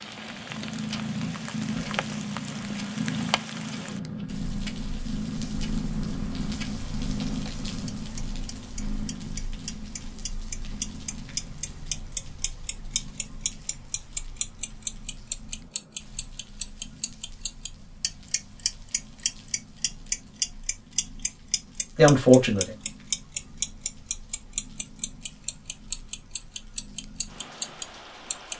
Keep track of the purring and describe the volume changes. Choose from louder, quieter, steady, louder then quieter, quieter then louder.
quieter.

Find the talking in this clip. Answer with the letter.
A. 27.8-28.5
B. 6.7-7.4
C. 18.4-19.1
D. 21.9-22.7
D.